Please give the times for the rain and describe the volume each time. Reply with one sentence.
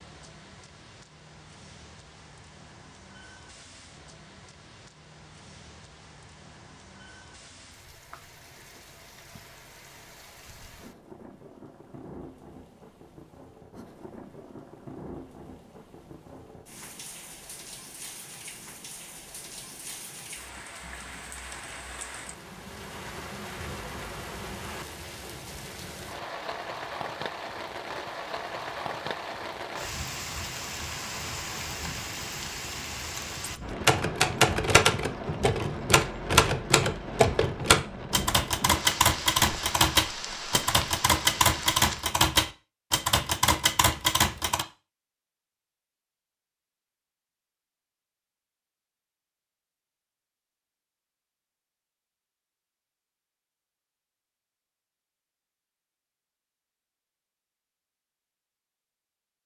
You can hear the rain from 0.0 to 42.1 s, getting louder.